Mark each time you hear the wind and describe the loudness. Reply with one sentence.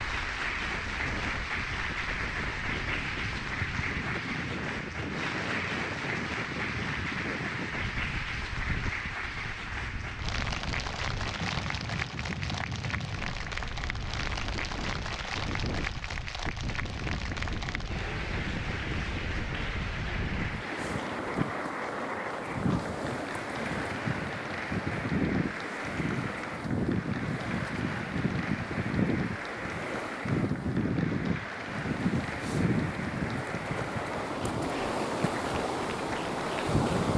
You can hear the wind from 0.0 to 37.1 s, getting louder.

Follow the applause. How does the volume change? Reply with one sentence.
The volume of the applause goes down.